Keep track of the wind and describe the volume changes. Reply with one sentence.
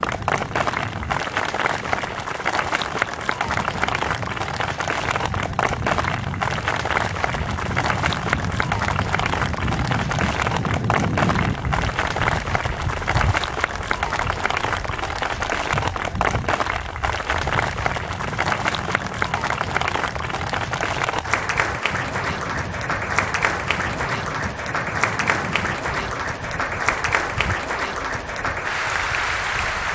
The loudness of the wind goes up, then down.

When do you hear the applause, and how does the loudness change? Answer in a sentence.
The applause can be heard from 0.0 to 29.9 s, at a steady volume.